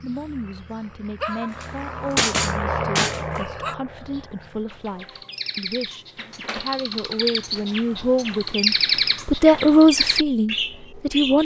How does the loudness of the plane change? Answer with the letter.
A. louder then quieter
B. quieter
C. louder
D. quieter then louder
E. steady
A.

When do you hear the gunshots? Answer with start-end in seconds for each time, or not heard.
1.5-3.3.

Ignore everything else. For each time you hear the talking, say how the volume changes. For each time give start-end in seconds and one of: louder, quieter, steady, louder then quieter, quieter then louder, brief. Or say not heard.
0.0-11.3 louder.